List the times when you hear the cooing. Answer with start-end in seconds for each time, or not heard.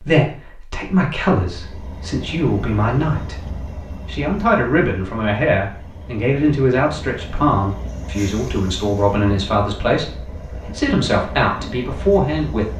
not heard.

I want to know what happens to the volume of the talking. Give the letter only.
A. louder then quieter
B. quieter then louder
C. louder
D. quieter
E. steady
E.